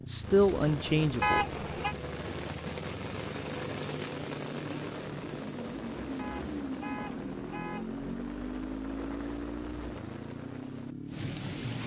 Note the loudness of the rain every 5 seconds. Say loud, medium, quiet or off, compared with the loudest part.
loud, medium, loud.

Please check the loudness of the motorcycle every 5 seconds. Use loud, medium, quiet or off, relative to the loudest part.
medium, loud, loud.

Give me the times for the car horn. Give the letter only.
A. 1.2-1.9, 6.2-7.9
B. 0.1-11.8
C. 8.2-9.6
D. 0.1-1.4
A.